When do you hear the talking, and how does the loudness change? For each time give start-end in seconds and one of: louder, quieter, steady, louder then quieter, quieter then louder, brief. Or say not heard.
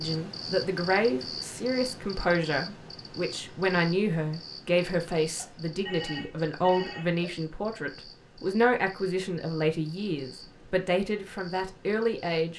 0.0-12.5 steady.